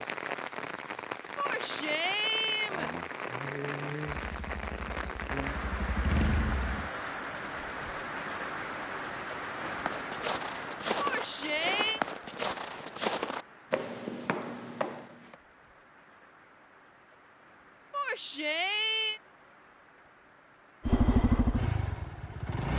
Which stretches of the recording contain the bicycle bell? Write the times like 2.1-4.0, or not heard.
not heard.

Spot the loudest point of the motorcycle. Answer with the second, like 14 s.
21 s.